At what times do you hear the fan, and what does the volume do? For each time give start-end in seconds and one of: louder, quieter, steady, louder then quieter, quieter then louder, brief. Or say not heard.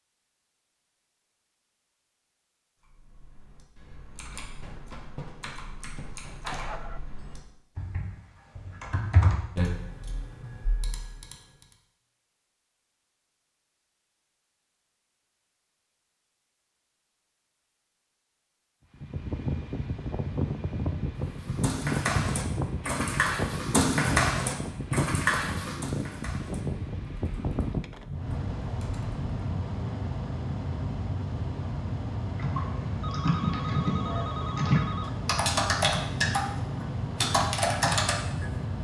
18.9-38.7 steady.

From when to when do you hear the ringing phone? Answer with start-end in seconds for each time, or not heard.
6.4-7.3, 33.0-35.3.